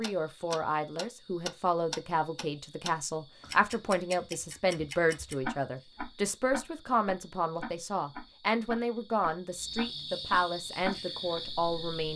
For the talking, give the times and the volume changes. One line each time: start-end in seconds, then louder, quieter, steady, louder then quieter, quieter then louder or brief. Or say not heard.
0.0-12.1 steady.